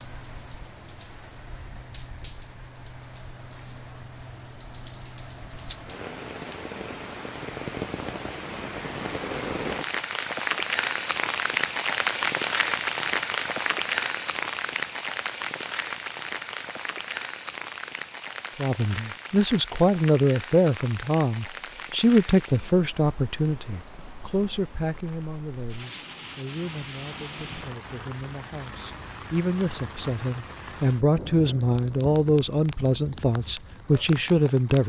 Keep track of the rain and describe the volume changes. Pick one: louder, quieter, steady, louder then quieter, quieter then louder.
louder then quieter.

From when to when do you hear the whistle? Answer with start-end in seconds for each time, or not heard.
not heard.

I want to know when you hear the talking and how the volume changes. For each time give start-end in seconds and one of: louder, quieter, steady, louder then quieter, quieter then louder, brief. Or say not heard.
18.6-34.8 quieter then louder.